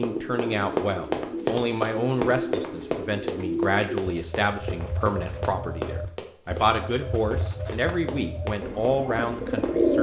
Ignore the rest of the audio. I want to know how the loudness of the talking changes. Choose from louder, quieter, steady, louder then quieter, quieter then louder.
steady.